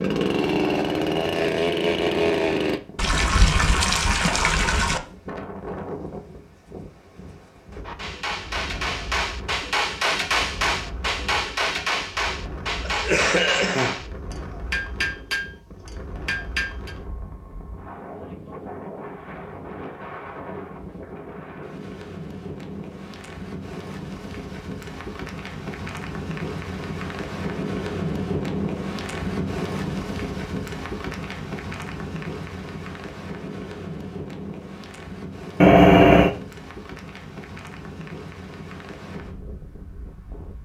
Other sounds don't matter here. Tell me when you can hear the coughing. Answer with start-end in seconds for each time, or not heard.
12.8-14.1.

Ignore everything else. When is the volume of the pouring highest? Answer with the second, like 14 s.
36 s.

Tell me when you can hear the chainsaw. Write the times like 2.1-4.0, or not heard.
0.0-2.8.